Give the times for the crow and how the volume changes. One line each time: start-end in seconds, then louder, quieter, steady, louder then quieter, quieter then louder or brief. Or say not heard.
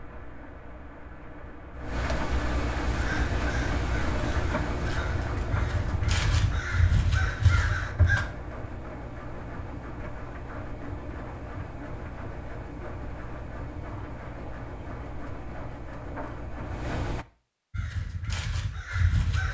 2.9-8.2 louder
17.7-19.4 brief.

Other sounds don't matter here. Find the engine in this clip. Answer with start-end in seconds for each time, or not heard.
0.0-17.2.